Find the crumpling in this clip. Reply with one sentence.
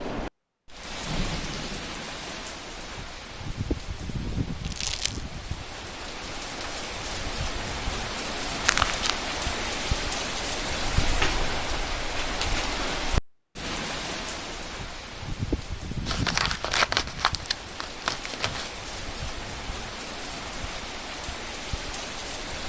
You can hear the crumpling from 4.6 to 5.2 s, from 8.7 to 9.2 s and from 16.1 to 18.7 s.